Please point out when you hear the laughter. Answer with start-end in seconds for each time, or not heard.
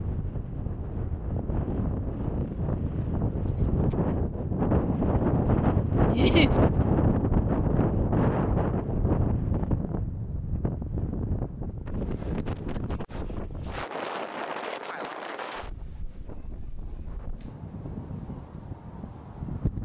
6.1-6.5.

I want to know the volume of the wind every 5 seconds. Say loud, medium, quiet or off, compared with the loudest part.
medium, loud, medium, quiet.